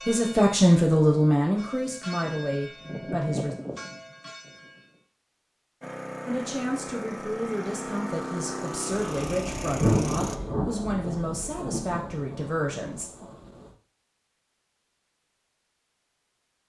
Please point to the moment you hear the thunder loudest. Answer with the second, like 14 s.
10 s.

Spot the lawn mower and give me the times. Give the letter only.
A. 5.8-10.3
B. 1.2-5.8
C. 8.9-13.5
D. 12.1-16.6
A.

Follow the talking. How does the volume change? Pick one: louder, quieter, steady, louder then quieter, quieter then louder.
quieter.